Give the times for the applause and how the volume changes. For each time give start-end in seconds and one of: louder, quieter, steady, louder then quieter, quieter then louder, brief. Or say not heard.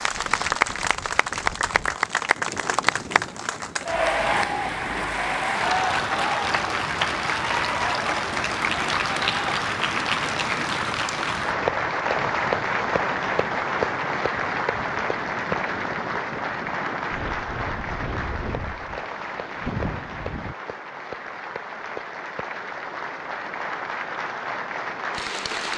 0.0-25.7 quieter.